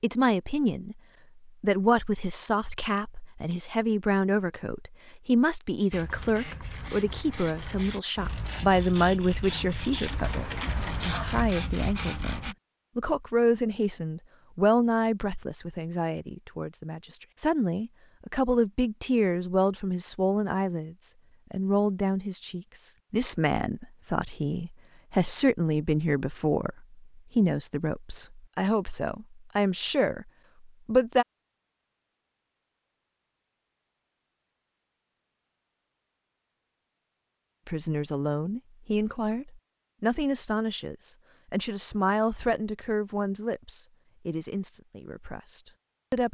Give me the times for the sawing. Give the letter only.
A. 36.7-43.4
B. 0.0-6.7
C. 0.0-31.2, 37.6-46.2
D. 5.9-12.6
D.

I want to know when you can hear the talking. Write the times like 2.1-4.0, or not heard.
0.0-31.2, 37.6-46.2.